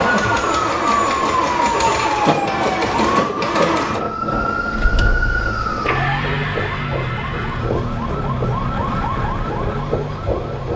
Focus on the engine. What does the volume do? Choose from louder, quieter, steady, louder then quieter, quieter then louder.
quieter.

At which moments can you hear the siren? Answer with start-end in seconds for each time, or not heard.
0.2-10.7.